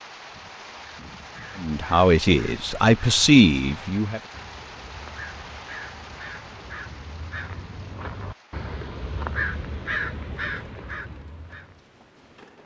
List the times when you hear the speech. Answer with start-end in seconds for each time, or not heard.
1.6-4.2.